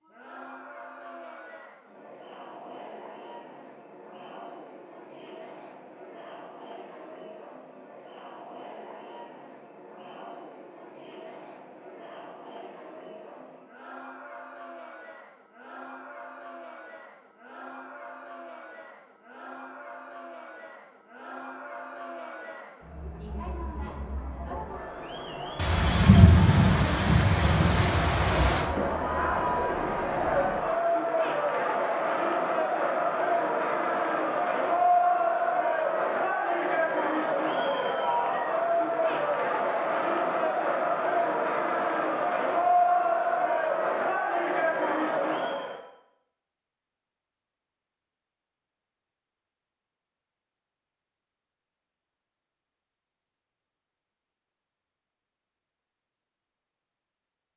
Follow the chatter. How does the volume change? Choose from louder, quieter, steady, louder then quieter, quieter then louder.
louder.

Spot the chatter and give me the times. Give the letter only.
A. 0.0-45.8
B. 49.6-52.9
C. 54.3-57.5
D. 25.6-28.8
A.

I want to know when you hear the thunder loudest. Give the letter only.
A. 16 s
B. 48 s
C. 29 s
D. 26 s
D.